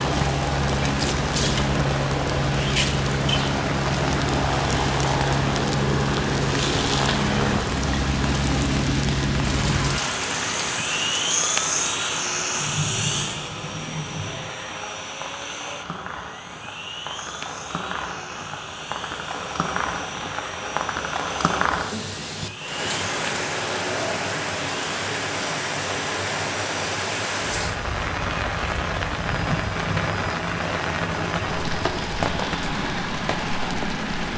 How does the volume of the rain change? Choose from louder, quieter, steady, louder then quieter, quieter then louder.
quieter then louder.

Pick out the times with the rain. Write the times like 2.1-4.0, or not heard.
0.0-34.3.